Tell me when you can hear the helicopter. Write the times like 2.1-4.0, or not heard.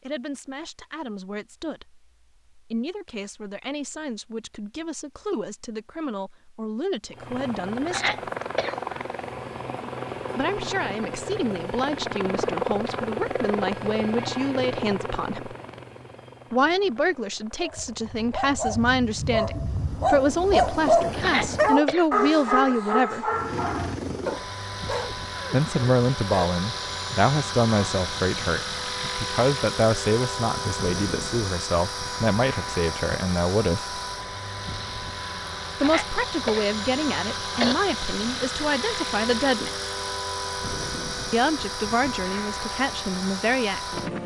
7.1-21.8, 23.3-44.2.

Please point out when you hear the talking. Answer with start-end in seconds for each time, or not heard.
0.0-8.3, 10.3-15.6, 16.5-23.2, 25.5-34.0, 35.8-39.8, 41.3-44.0.